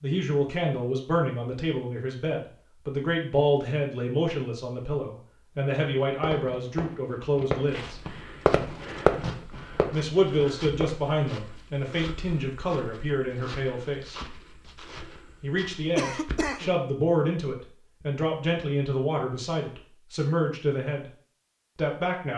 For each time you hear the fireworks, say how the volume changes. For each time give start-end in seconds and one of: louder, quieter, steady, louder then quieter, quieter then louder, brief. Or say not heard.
6.0-10.9 louder then quieter.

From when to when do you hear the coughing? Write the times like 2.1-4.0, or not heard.
15.9-16.7.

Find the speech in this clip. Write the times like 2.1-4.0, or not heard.
0.0-8.0, 9.9-14.2, 15.4-21.1, 21.8-22.3.